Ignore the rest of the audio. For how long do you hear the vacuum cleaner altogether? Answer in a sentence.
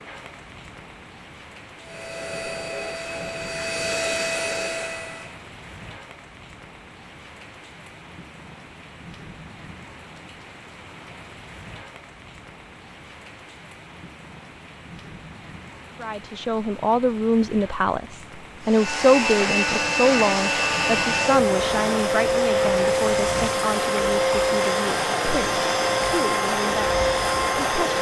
The vacuum cleaner can be heard for 13 seconds in total.